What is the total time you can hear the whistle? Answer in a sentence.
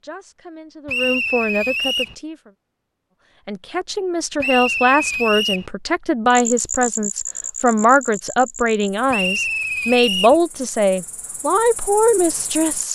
The whistle can be heard for 4 seconds in total.